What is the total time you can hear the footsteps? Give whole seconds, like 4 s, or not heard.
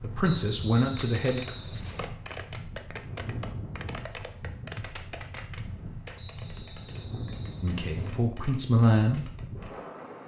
not heard.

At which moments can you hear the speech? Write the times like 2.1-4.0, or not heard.
0.0-1.5, 7.6-9.3.